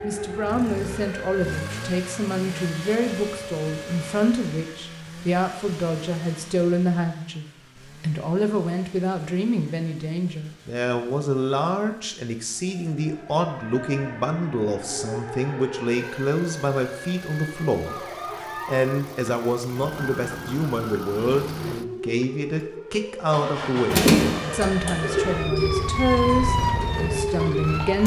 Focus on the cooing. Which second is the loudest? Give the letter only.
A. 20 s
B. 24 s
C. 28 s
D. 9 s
B.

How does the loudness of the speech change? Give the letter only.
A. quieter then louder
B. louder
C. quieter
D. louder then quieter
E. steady
E.